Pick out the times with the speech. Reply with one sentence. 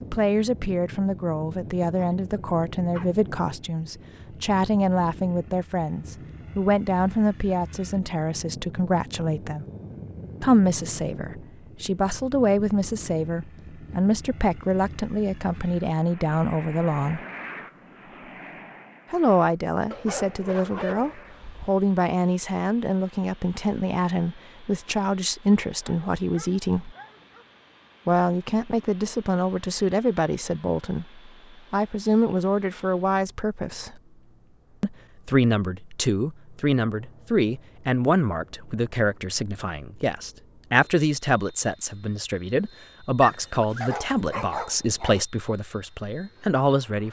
You can hear the speech from 0.0 to 9.7 s, from 10.4 to 17.2 s, from 19.1 to 26.9 s, from 28.1 to 33.9 s and from 34.8 to 47.0 s.